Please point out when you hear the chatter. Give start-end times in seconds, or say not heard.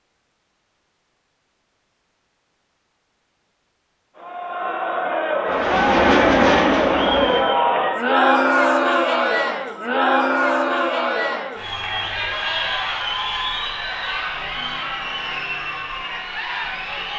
4.2-17.1.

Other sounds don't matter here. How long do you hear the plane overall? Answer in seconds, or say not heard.
2 s.